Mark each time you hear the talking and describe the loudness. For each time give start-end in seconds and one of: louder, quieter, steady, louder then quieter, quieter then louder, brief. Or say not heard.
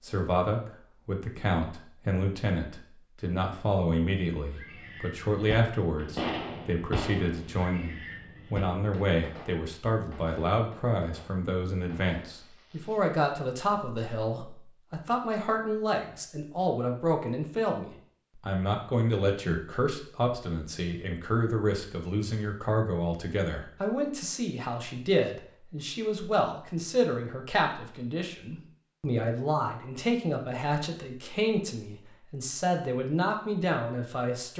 0.0-34.5 steady.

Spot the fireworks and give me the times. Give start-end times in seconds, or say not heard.
4.4-13.2.